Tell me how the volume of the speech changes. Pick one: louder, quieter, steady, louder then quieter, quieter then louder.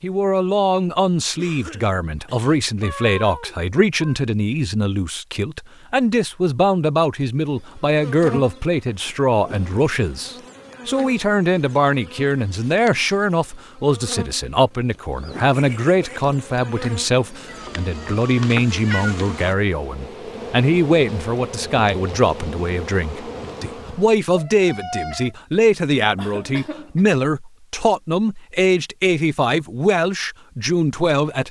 steady.